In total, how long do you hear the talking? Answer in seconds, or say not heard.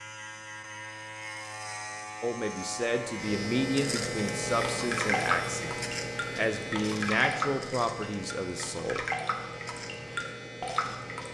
7 s.